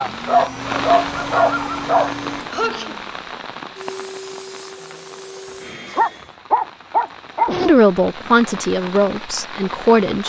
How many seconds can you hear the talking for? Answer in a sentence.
You can hear the talking for 3 seconds altogether.